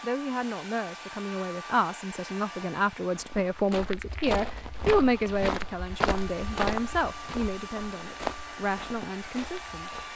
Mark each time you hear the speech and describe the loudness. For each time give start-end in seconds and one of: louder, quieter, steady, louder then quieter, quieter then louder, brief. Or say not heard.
0.0-10.0 louder then quieter.